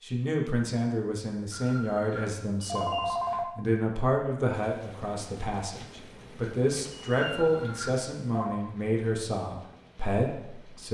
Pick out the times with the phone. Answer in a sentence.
You can hear the phone from 1.5 to 3.5 s and from 7.2 to 8.6 s.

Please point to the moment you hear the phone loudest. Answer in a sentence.
The volume of the phone peaks at 3 seconds.